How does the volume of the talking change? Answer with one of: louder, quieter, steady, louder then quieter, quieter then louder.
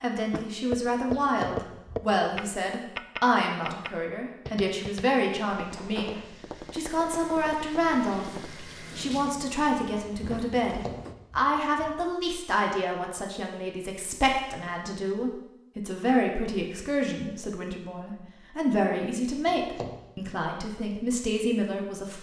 steady.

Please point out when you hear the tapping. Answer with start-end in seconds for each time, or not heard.
0.3-8.7.